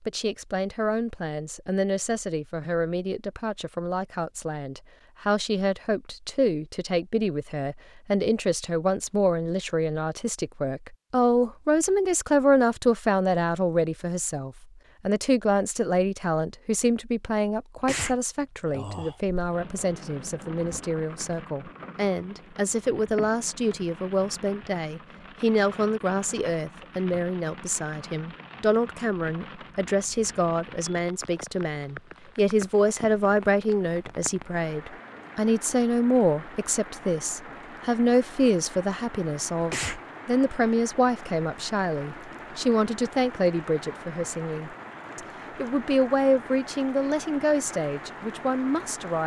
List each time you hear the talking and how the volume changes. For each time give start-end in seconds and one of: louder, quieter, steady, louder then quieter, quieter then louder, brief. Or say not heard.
0.0-49.2 steady.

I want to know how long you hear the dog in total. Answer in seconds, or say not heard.
not heard.